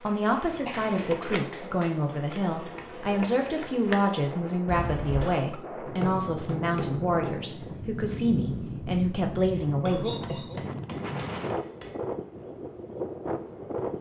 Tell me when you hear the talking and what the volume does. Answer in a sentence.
The talking can be heard from 0.0 to 10.1 s, at a steady volume.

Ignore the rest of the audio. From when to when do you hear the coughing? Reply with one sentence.
The coughing can be heard from 0.5 to 1.1 s, from 4.7 to 5.5 s and from 9.8 to 10.6 s.